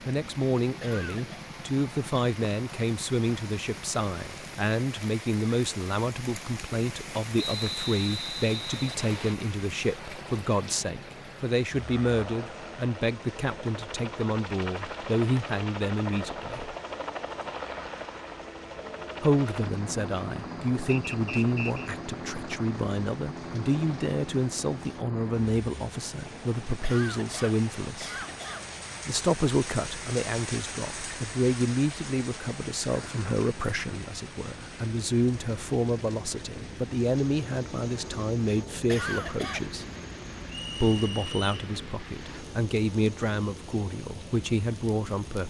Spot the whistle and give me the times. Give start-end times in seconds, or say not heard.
7.3-9.3, 20.9-21.9, 40.5-41.5.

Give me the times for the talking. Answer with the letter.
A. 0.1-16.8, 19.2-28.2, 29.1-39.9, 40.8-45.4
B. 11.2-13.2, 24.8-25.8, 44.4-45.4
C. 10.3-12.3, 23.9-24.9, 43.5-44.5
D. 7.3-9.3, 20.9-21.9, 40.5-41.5
A.